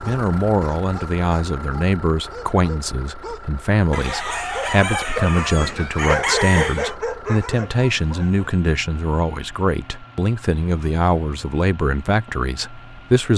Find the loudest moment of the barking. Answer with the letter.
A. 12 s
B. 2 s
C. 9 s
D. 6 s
D.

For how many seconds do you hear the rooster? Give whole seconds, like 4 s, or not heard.
3 s.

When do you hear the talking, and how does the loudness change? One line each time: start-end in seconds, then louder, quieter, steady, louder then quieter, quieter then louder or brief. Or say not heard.
0.0-13.3 steady.